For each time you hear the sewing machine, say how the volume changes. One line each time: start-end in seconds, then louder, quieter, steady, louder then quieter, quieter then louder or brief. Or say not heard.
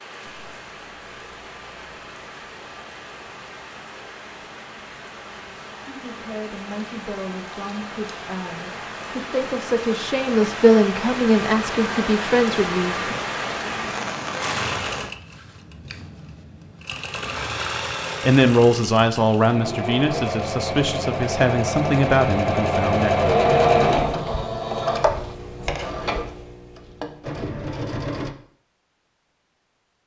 14.4-28.4 louder then quieter.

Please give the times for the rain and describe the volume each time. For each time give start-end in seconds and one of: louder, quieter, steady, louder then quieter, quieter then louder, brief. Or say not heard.
0.0-15.1 louder.